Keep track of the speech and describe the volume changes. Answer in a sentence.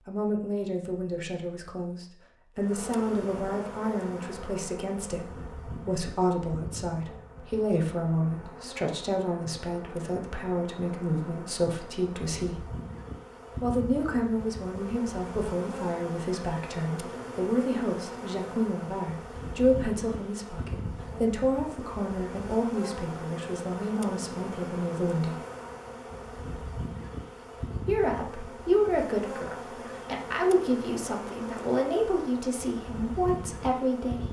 The volume of the speech stays about the same.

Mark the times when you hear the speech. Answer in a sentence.
You can hear the speech from 0.1 to 12.7 s, from 13.6 to 25.4 s and from 27.9 to 34.2 s.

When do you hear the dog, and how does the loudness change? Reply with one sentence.
You can't hear the dog here.